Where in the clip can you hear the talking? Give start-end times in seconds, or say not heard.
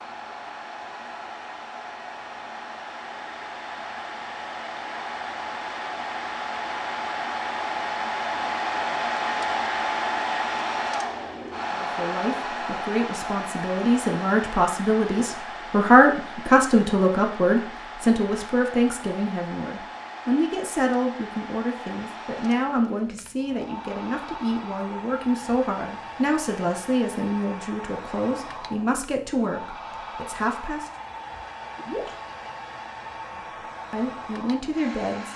11.7-30.9, 33.9-35.3.